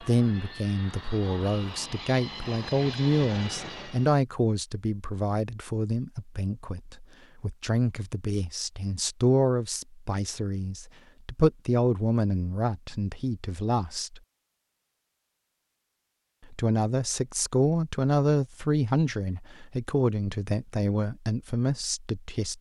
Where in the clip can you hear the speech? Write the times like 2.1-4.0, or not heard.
0.0-14.2, 16.5-22.5.